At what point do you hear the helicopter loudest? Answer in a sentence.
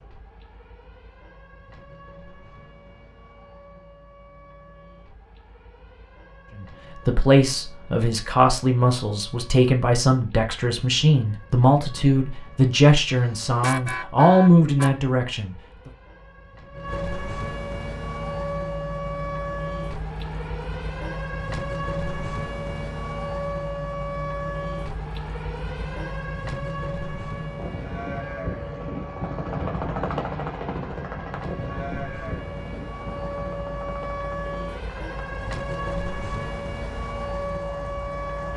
The volume of the helicopter peaks at 30 seconds.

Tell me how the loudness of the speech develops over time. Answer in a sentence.
The loudness of the speech stays about the same.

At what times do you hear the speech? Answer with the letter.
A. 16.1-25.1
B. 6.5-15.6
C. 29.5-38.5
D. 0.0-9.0
B.